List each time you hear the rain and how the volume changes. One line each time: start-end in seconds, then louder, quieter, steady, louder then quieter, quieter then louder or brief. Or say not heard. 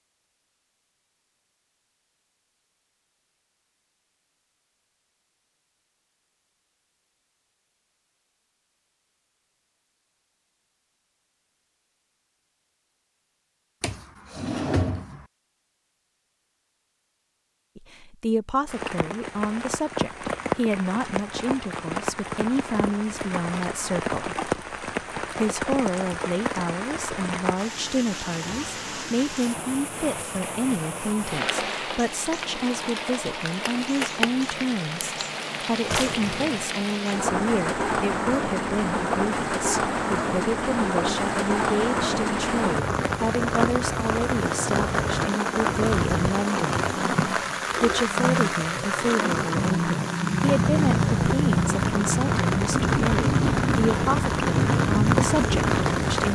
18.6-56.2 louder.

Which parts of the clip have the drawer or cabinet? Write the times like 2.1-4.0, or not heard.
13.8-15.2, 35.9-36.7.